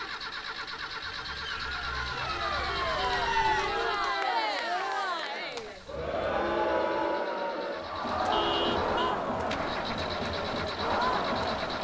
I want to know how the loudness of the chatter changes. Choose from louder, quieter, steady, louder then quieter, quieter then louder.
steady.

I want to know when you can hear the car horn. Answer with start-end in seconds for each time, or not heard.
2.5-4.2, 8.3-9.2.